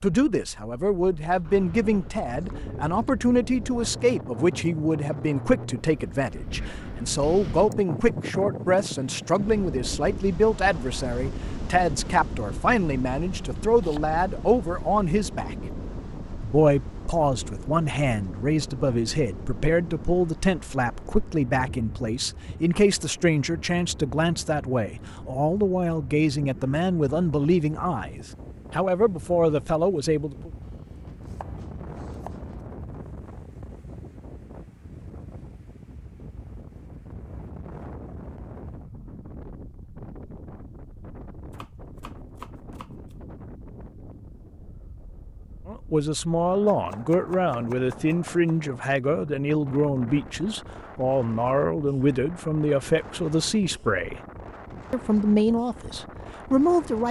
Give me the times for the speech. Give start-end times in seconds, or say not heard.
0.0-15.6, 16.4-30.5, 45.6-54.2, 54.9-57.0.